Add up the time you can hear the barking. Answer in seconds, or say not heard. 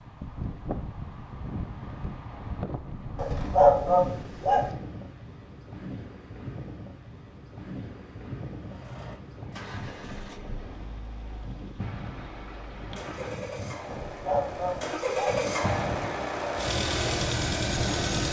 3 s.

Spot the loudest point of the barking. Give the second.
4 s.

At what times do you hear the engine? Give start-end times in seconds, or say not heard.
8.6-18.2.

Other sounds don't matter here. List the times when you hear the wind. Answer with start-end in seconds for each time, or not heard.
0.0-18.2.